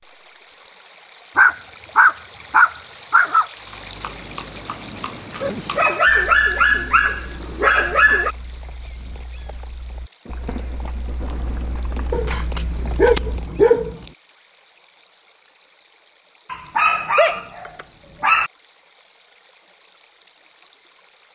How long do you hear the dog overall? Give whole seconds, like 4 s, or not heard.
9 s.